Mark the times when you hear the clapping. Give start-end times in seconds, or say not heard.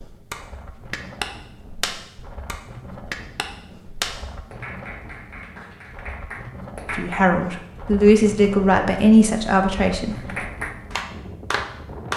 0.0-7.2, 10.2-12.1.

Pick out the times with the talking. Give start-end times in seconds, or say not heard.
6.9-10.2.